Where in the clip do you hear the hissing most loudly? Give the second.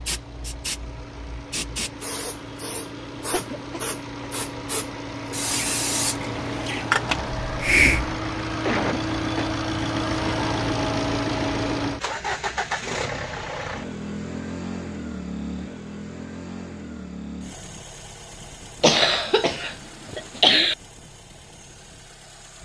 7 s.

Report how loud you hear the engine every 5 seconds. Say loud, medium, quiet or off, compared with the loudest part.
medium, loud, loud, medium, quiet.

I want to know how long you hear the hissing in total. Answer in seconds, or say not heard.
8 s.